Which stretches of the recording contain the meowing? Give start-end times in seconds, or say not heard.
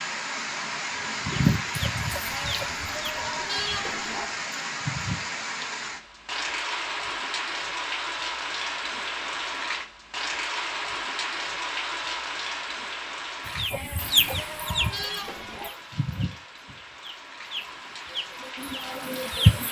not heard.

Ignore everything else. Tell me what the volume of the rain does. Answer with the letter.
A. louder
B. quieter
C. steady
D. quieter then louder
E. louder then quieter
B.